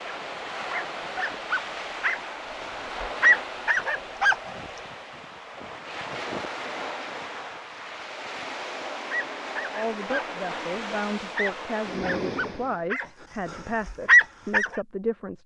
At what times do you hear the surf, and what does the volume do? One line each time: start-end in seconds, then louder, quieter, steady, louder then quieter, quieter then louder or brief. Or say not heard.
0.0-12.8 steady.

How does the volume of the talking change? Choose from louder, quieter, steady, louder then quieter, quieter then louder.
steady.